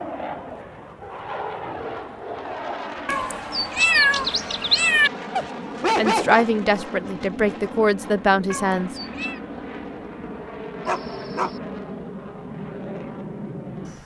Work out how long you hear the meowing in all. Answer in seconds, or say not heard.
3 s.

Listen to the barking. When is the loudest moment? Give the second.
6 s.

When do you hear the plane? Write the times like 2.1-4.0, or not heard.
0.0-14.0.